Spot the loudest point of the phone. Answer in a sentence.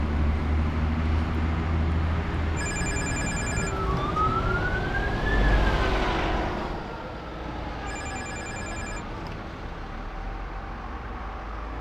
The loudest moment of the phone is at 3 seconds.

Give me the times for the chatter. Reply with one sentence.
You can't hear the chatter here.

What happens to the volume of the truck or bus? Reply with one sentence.
The volume of the truck or bus goes down.